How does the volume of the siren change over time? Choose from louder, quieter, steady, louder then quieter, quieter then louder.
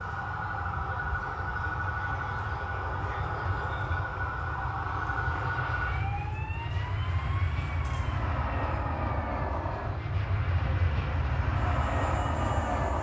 quieter.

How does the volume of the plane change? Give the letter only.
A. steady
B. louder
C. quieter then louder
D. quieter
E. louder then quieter
B.